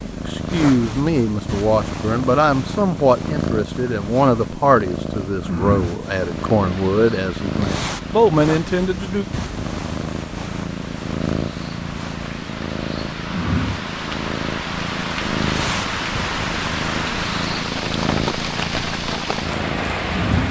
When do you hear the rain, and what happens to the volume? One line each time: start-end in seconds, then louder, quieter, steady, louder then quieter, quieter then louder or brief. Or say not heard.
6.4-20.4 louder.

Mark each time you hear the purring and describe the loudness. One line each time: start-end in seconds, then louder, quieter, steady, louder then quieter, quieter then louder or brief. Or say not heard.
0.0-20.4 steady.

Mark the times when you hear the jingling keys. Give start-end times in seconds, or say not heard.
not heard.